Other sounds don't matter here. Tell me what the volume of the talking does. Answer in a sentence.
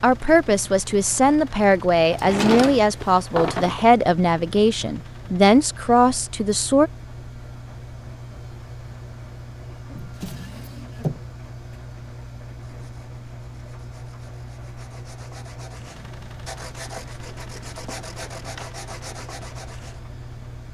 The loudness of the talking stays about the same.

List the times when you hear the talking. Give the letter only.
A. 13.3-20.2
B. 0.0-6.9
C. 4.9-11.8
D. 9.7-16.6
B.